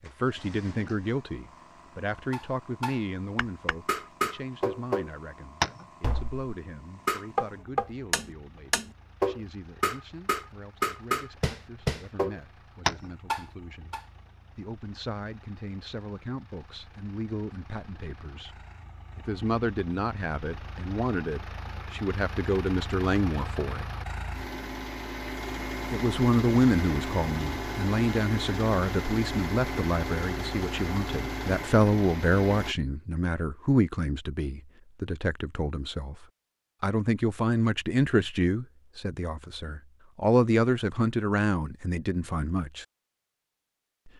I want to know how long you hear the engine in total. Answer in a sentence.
The engine can be heard for 33 seconds in total.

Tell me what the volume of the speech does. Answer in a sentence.
The loudness of the speech goes down, then up.